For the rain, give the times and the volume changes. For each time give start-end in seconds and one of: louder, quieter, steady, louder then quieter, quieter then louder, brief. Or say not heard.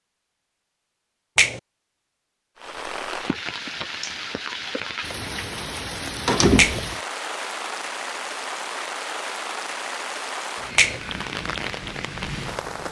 2.5-12.8 steady.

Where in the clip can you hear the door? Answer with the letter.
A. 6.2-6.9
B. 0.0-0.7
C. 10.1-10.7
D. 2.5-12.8
A.